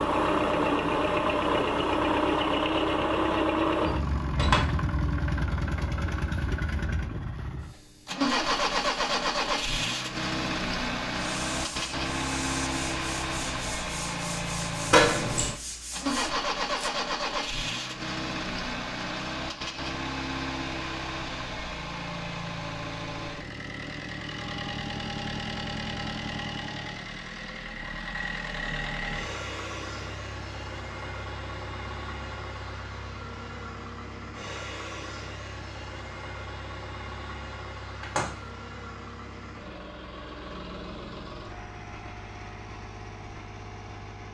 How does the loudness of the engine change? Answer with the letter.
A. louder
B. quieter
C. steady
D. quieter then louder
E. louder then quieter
B.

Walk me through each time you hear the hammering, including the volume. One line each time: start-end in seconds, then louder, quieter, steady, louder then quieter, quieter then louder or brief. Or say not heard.
not heard.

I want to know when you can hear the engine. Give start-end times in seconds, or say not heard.
0.0-44.2.